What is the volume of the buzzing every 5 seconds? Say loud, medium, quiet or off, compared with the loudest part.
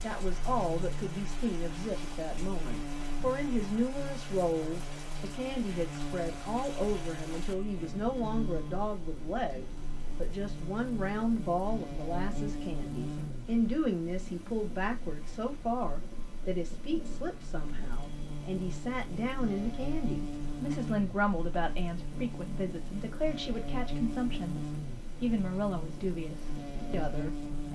loud, loud, loud, medium, loud, loud.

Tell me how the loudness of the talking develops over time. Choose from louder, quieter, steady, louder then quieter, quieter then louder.
steady.